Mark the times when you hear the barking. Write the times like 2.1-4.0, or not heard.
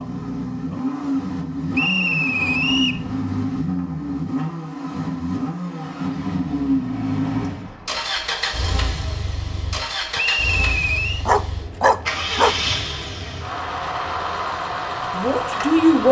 11.2-12.6.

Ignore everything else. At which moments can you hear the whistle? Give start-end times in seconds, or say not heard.
1.7-3.0, 10.2-11.2.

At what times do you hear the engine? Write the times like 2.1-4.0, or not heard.
0.0-16.0.